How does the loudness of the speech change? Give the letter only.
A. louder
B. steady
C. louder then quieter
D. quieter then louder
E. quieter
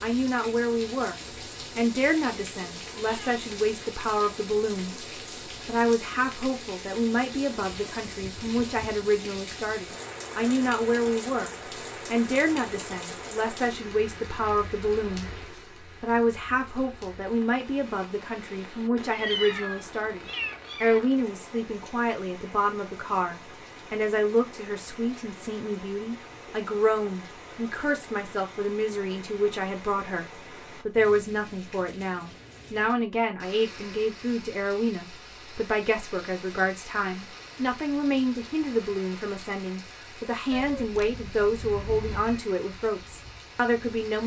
B.